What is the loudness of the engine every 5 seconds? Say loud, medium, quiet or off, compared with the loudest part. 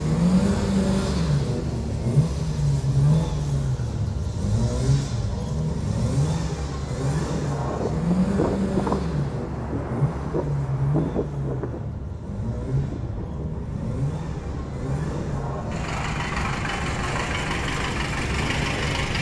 loud, loud, medium, medium.